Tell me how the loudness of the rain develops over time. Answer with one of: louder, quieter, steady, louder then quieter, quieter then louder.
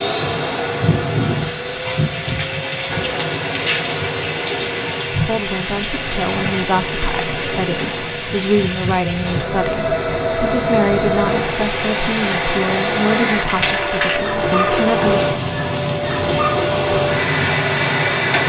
steady.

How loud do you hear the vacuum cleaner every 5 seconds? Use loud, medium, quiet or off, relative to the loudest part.
medium, medium, loud, loud.